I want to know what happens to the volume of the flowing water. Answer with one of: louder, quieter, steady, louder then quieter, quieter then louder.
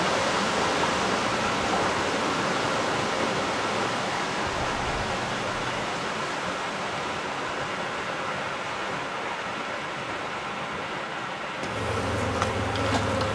quieter.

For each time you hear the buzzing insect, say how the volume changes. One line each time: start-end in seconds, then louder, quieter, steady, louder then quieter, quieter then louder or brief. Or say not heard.
0.0-4.0 steady
11.6-13.3 brief.